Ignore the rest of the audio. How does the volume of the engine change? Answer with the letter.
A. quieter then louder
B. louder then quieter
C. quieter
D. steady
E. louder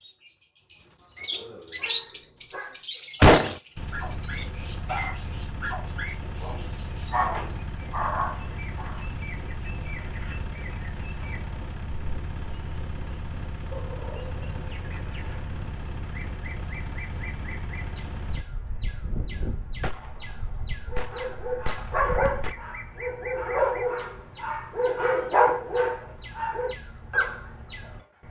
D.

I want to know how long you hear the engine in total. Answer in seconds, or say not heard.
15 s.